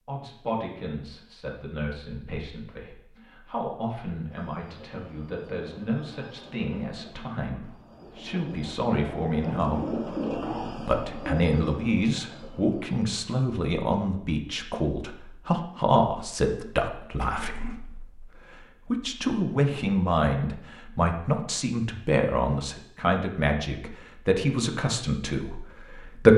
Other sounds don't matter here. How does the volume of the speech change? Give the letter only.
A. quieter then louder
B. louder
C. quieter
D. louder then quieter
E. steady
B.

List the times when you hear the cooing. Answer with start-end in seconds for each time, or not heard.
4.2-13.0.